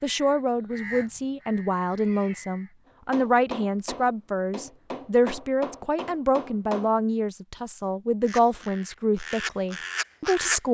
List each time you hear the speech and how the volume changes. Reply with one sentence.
The speech can be heard from 0.0 to 10.6 s, at a steady volume.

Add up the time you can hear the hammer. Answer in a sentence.
The hammer can be heard for 4 seconds in total.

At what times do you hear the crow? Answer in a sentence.
You can hear the crow from 0.0 to 2.8 s and from 8.2 to 10.6 s.